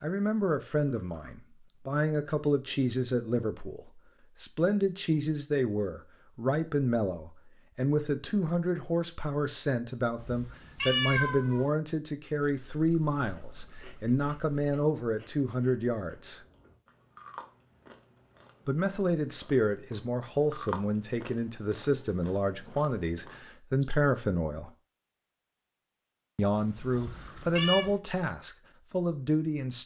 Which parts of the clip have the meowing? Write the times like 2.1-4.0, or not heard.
10.2-11.7, 27.0-27.9.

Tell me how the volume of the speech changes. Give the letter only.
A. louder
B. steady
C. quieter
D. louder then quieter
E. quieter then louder
B.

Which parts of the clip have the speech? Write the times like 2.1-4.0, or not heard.
0.0-16.4, 18.6-24.7, 26.4-29.8.